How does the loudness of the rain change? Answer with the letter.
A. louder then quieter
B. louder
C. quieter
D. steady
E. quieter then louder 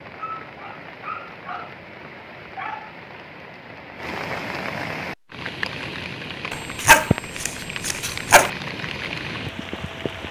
B.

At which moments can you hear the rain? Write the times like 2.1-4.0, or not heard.
0.0-10.2.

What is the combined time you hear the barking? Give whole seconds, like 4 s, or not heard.
4 s.